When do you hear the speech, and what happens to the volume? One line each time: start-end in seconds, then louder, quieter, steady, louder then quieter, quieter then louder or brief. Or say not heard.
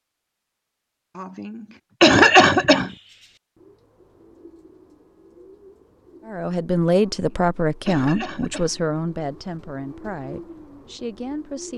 6.2-11.7 quieter.